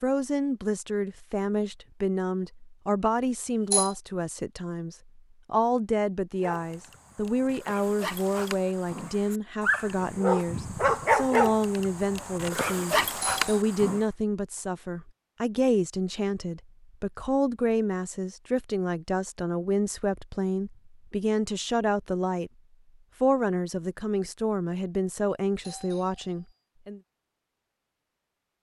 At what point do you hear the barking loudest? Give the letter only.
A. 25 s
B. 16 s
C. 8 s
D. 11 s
D.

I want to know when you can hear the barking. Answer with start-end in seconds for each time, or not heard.
6.4-14.0.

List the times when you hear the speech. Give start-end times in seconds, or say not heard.
0.0-22.5, 23.2-27.0.